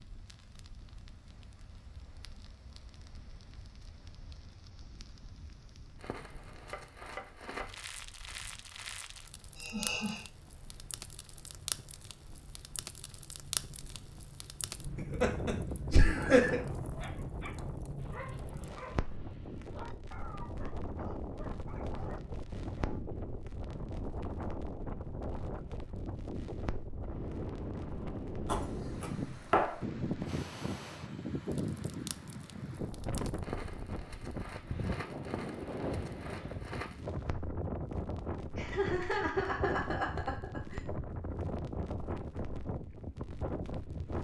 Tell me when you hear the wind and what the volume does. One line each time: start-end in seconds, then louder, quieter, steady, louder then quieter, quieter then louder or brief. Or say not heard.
0.0-44.1 louder.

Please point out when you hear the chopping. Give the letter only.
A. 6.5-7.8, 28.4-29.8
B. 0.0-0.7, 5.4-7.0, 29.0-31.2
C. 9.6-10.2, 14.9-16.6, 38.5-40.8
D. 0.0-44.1
A.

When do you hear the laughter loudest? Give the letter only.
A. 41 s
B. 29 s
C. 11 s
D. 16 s
D.